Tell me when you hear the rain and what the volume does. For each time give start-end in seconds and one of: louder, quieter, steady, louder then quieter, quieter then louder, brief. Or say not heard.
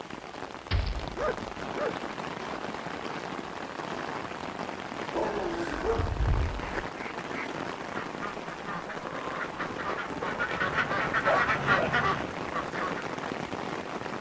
0.0-14.1 steady.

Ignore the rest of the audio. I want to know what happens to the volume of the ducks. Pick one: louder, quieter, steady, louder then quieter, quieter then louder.
louder.